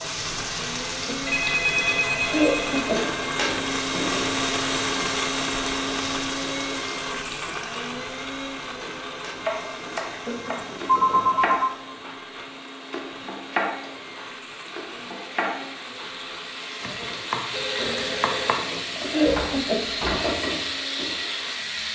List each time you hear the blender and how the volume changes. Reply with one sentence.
You can hear the blender from 0.0 to 21.9 s, getting quieter.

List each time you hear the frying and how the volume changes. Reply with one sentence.
The frying can be heard from 0.0 to 21.9 s, getting quieter then louder.